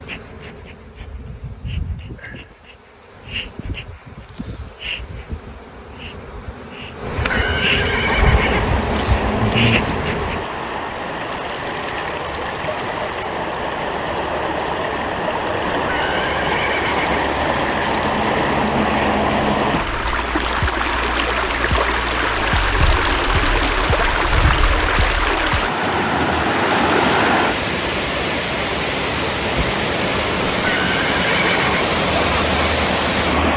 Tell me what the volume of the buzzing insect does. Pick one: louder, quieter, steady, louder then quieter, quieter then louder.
louder.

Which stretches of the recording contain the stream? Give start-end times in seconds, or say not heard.
8.0-33.5.